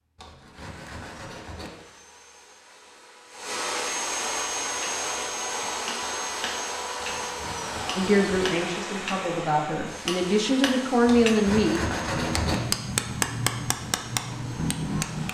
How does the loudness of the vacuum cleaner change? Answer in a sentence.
The loudness of the vacuum cleaner goes up, then down.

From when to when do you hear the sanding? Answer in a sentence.
You can hear the sanding from 0.1 to 1.7 s, from 7.0 to 8.5 s and from 11.1 to 12.6 s.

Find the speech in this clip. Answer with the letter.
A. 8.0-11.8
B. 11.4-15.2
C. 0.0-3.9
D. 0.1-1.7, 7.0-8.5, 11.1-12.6
A.